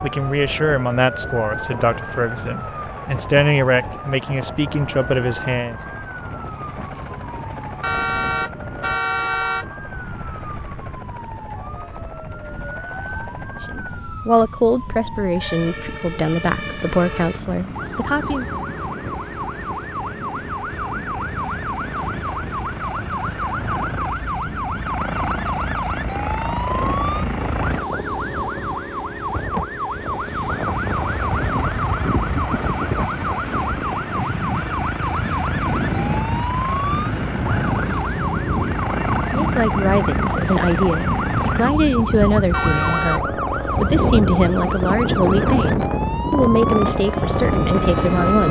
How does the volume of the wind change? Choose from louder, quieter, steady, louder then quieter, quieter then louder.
louder.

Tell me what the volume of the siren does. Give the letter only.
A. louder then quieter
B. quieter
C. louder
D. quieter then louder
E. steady
C.